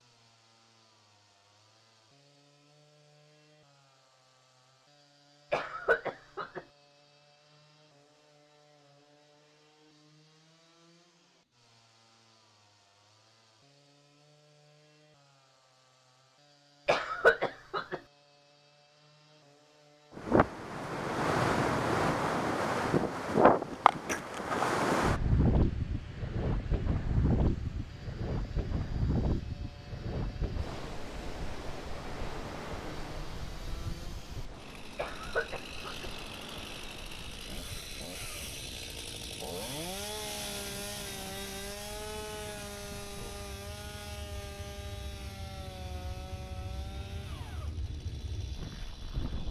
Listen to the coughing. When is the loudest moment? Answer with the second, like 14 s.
17 s.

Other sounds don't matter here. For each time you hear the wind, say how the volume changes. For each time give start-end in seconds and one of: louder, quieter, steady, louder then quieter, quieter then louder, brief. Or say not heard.
20.1-49.4 quieter.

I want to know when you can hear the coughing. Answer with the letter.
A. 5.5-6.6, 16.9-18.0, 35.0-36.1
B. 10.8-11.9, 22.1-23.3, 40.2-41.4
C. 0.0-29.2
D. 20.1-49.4
A.